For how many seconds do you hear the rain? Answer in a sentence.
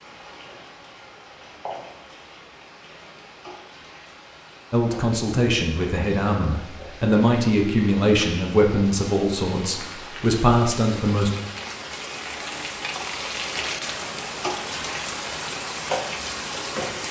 You can hear the rain for 17 seconds altogether.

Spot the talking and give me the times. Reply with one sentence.
The talking can be heard from 4.7 to 11.3 s.